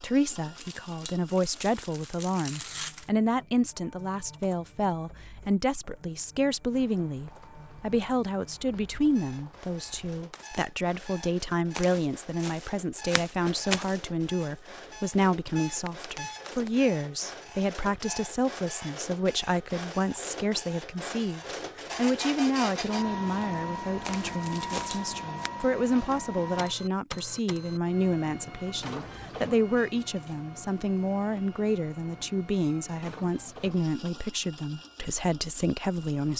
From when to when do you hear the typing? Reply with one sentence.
You can't hear the typing here.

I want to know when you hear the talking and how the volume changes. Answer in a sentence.
The talking can be heard from 0.0 to 36.3 s, at a steady volume.